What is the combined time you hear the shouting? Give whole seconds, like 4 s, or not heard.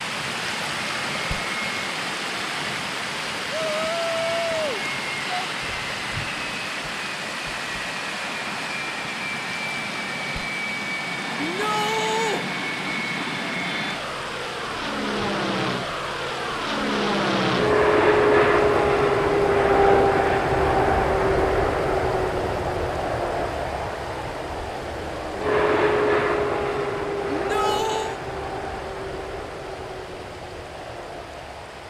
4 s.